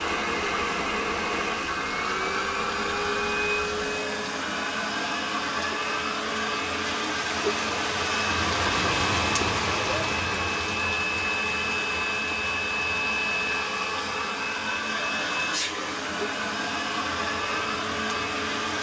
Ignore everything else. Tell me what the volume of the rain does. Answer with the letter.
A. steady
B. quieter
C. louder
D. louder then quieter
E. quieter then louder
D.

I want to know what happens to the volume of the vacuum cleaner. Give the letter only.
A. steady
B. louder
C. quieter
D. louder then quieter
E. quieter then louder
A.